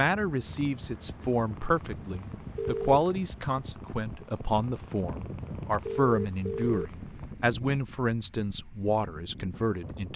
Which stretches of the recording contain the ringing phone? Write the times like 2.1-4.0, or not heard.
2.5-3.0, 5.8-6.9.